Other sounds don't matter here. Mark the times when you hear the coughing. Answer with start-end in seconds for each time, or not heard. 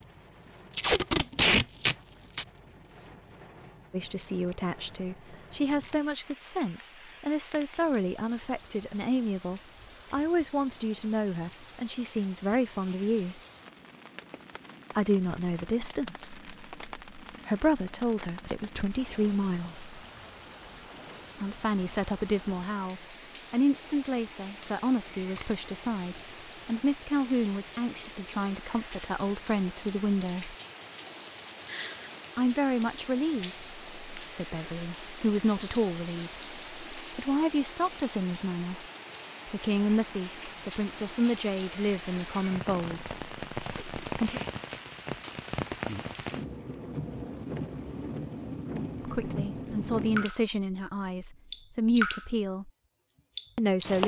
31.6-32.1.